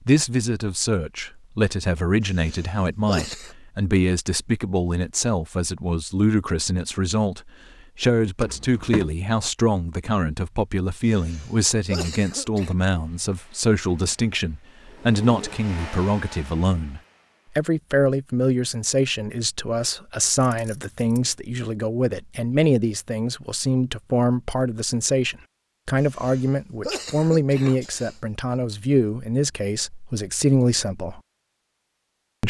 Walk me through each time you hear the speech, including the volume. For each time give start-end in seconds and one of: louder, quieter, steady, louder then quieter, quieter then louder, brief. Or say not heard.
0.1-31.2 steady.